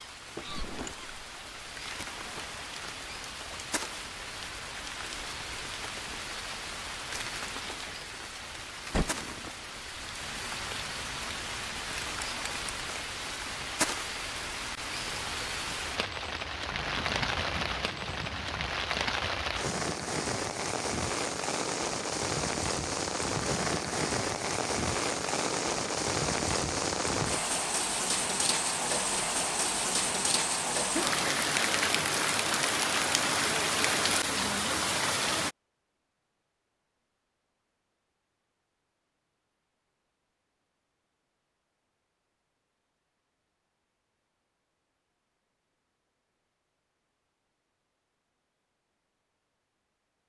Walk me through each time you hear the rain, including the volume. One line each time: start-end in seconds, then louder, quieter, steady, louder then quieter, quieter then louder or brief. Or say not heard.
0.0-35.5 louder.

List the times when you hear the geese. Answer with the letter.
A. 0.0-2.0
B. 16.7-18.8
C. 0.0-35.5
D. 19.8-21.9
B.